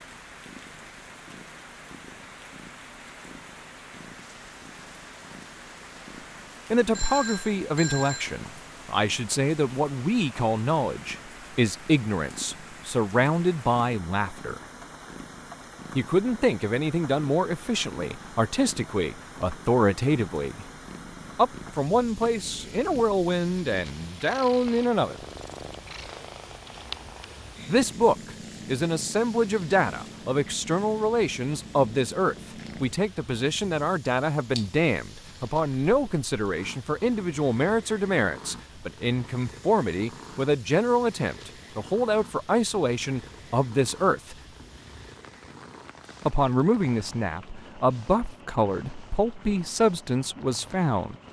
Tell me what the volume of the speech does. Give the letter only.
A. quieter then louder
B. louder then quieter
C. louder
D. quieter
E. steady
E.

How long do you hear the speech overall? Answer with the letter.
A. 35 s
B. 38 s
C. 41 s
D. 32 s
B.